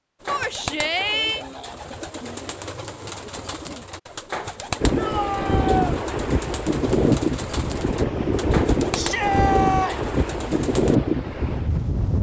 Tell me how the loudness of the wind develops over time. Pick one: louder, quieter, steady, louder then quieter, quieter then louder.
steady.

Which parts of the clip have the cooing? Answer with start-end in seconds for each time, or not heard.
0.2-11.0.